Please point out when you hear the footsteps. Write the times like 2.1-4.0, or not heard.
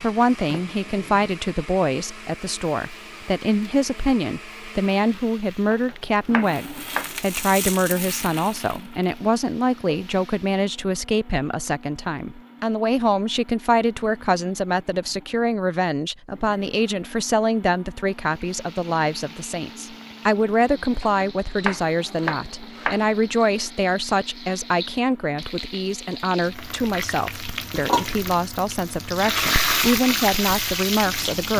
not heard.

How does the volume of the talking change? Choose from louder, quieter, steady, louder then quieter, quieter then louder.
steady.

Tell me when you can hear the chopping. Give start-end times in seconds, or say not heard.
5.7-7.1, 21.0-23.1.